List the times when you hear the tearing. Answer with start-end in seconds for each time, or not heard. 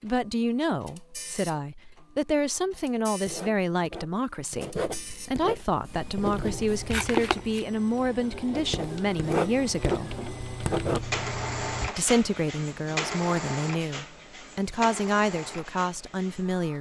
6.9-7.7.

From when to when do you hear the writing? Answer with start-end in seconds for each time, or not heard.
3.2-6.9, 8.5-11.1.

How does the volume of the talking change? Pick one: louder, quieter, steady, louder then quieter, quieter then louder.
steady.